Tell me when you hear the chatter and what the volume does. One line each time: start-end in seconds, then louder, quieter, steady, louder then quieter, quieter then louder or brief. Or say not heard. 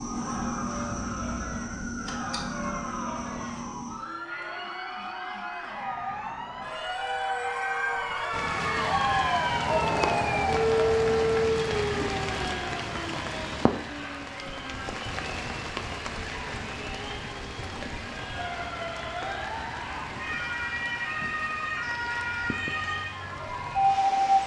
0.0-24.4 louder then quieter.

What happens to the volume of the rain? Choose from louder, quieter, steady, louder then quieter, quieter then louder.
quieter.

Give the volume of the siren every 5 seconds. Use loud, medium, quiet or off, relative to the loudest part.
medium, medium, loud, medium, loud.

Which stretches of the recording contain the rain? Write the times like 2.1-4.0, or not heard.
8.3-24.4.